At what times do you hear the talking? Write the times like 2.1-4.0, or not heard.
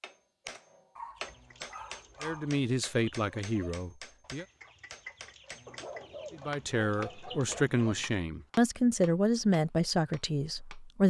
2.2-4.5, 6.3-11.0.